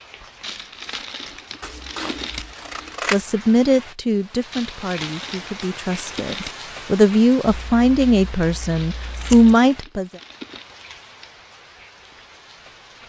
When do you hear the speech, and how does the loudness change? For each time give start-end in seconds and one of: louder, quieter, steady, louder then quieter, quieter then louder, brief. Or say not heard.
3.1-10.1 quieter then louder.